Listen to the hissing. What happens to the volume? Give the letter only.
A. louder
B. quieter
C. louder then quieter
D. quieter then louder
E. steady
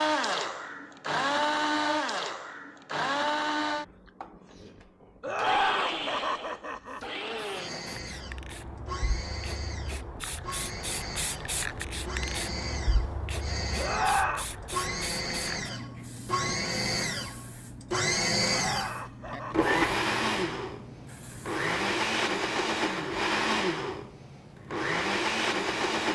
C.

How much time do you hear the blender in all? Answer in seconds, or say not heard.
26 s.